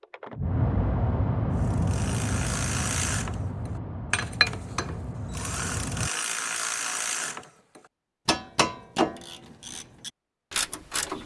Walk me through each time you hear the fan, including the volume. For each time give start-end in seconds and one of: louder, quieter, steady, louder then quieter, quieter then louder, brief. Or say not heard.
0.0-6.1 quieter.